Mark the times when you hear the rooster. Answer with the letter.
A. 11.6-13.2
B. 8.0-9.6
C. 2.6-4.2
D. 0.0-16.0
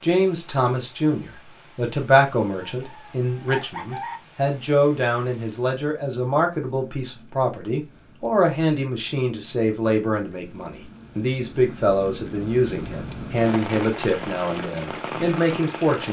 C.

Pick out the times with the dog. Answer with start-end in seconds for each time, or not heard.
not heard.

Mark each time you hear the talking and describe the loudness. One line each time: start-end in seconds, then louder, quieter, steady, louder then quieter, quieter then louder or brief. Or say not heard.
0.0-16.0 steady.